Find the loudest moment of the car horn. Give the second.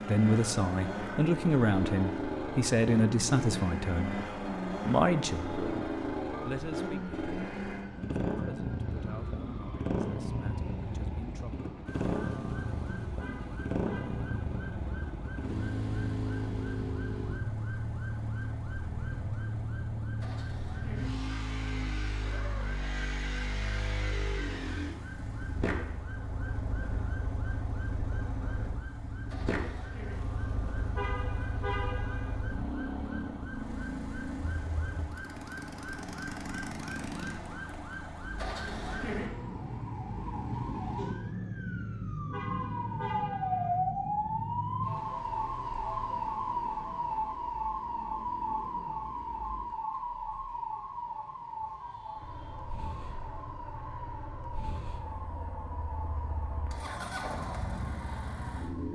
32 s.